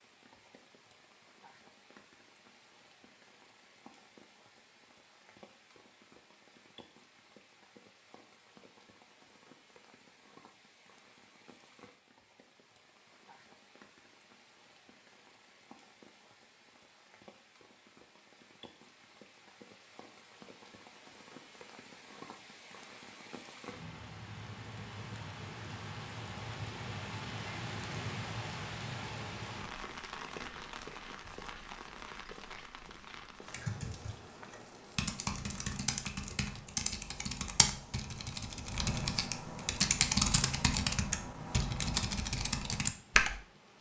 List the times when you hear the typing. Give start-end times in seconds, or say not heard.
33.5-43.4.